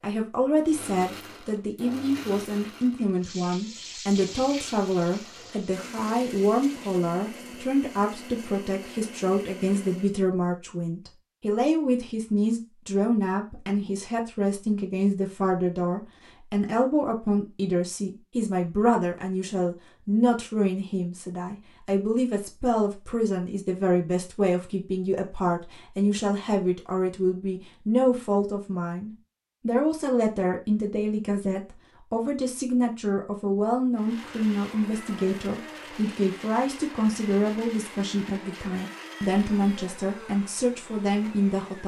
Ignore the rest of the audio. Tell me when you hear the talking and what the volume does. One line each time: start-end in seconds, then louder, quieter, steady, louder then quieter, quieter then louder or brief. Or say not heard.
0.0-41.8 steady.